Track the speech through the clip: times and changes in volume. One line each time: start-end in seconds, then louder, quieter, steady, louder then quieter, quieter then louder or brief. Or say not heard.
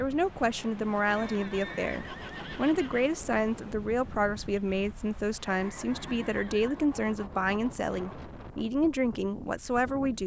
0.0-10.2 steady.